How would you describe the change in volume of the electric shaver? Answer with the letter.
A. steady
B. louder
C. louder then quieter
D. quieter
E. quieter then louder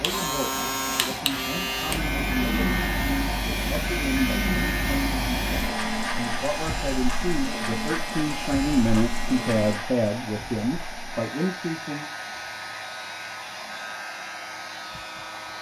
D.